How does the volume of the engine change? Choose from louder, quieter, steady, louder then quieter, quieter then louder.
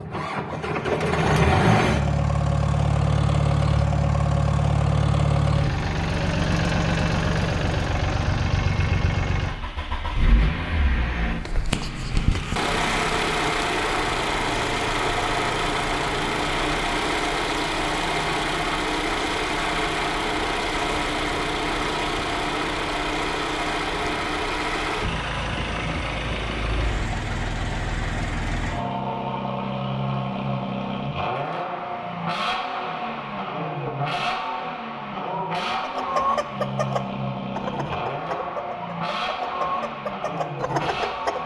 quieter.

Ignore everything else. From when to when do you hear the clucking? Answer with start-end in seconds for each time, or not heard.
35.8-41.4.